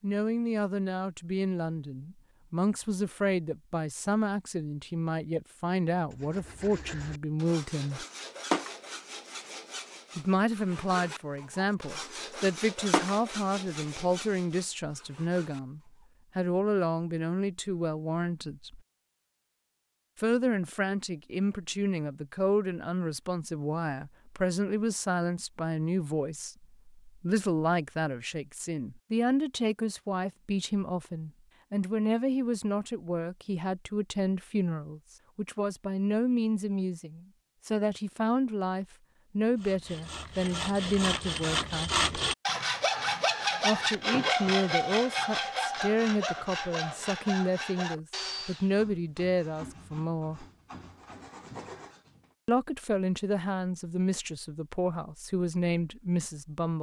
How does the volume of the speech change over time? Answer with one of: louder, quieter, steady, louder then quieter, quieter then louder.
steady.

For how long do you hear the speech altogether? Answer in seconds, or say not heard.
50 s.